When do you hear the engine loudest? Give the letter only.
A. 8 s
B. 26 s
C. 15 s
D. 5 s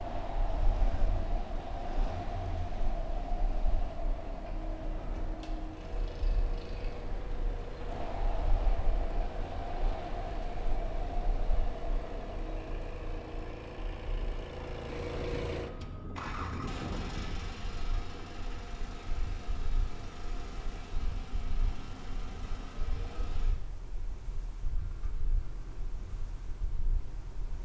C.